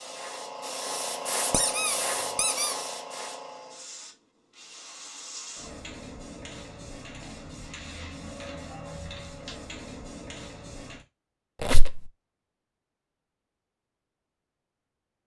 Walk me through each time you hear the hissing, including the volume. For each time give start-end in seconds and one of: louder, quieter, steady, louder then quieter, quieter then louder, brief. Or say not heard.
0.0-11.1 quieter.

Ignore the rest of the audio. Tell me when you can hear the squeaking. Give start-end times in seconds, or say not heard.
1.5-2.8, 11.6-12.0.